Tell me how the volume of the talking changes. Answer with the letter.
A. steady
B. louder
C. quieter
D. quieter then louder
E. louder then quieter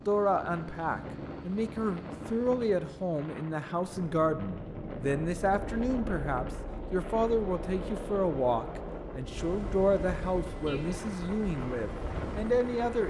A.